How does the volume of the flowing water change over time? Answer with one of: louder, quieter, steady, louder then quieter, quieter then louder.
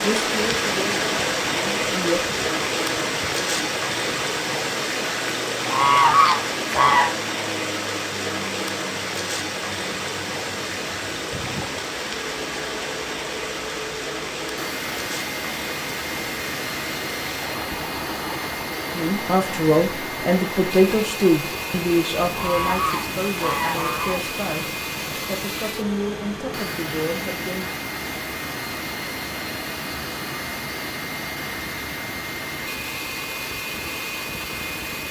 quieter.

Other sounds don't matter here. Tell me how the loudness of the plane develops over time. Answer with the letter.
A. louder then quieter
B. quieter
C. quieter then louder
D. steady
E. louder
E.